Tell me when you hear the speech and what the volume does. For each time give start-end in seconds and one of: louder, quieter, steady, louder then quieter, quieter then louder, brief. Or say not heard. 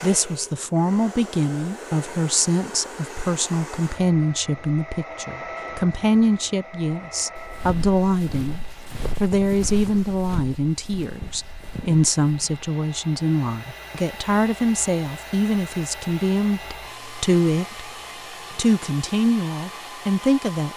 0.0-17.9 steady
18.6-20.7 brief.